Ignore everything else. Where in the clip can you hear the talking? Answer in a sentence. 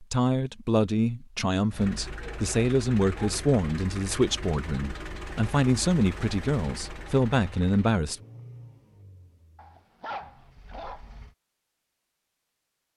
The talking can be heard from 0.0 to 8.2 s.